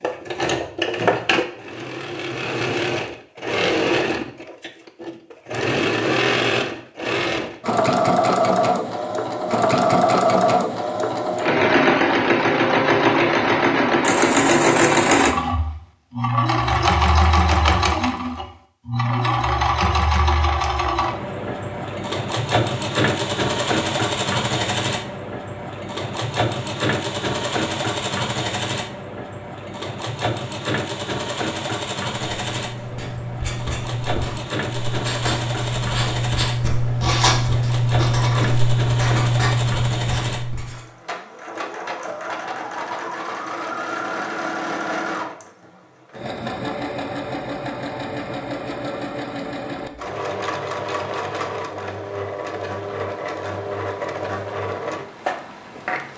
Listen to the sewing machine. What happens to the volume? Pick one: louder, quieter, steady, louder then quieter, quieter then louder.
quieter.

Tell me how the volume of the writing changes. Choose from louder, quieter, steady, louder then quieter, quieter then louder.
louder.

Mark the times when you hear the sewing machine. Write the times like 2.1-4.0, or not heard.
0.0-56.1.